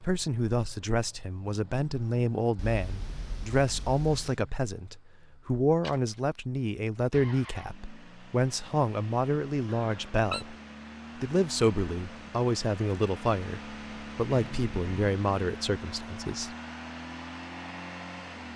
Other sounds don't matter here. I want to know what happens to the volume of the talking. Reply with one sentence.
The loudness of the talking stays about the same.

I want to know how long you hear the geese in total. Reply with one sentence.
The geese can't be heard in this clip.